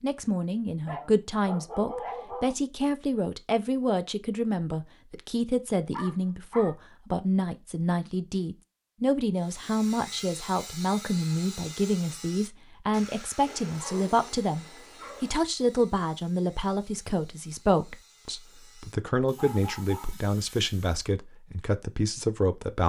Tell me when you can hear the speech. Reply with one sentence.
The speech can be heard from 0.0 to 22.8 s.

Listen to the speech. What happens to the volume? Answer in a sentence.
The volume of the speech stays about the same.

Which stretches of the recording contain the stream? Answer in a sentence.
The stream can't be heard in this clip.